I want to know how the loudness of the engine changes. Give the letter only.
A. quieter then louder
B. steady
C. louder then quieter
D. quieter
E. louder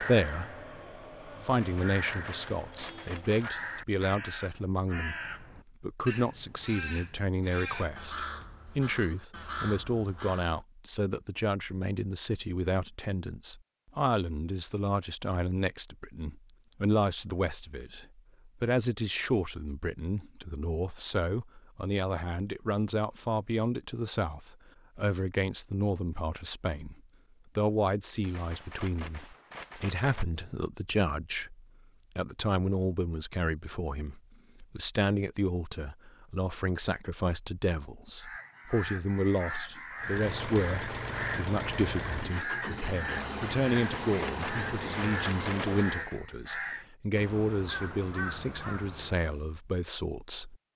B.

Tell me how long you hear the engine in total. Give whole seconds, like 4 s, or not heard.
6 s.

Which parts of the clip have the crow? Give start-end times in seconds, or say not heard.
0.0-10.7, 38.1-49.4.